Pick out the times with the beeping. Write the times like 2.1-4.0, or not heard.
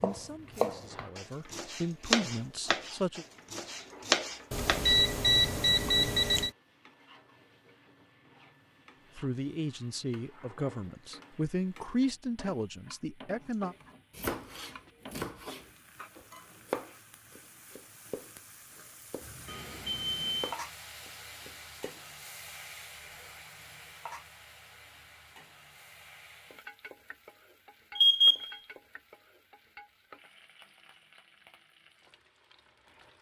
4.5-6.5, 19.4-20.6, 27.9-28.6.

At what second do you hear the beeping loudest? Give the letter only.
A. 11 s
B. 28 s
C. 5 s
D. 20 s
B.